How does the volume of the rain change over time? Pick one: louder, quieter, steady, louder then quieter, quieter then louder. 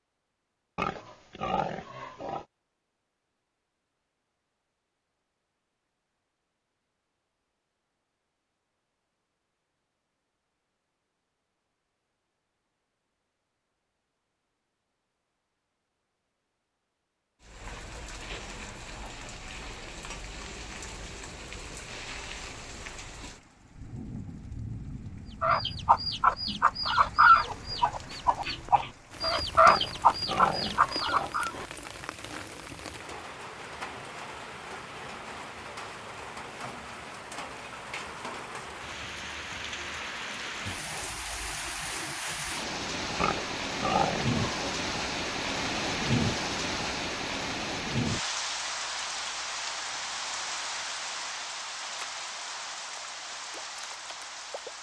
louder.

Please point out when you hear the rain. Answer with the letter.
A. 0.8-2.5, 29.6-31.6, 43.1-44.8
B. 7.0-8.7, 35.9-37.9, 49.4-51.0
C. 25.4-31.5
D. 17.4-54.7
D.